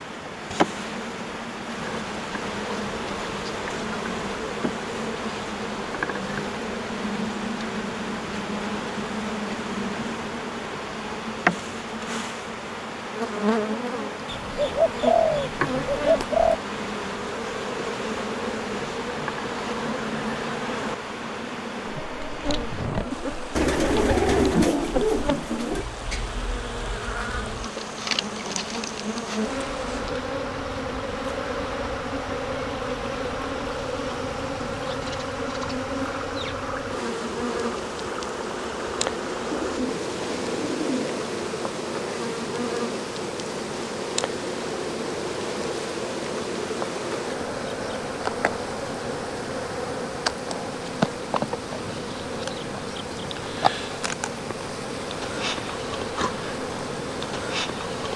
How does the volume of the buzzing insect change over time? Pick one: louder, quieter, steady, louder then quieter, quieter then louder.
steady.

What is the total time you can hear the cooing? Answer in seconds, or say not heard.
6 s.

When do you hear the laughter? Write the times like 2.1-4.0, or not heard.
22.6-23.5.